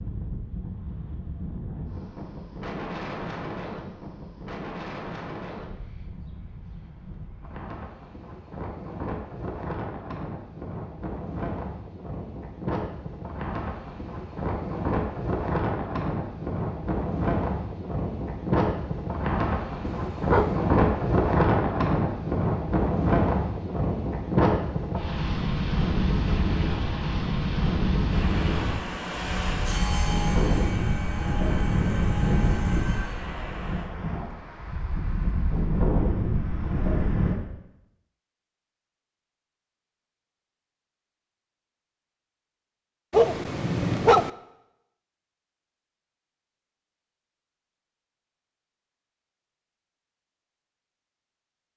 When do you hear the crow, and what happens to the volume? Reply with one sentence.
You can't hear the crow here.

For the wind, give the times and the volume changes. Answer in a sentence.
The wind can be heard from 0.0 to 37.4 s, getting louder.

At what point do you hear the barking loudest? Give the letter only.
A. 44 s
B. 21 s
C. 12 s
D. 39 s
A.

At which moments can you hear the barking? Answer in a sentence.
The barking can be heard from 19.9 to 20.6 s and from 43.1 to 44.3 s.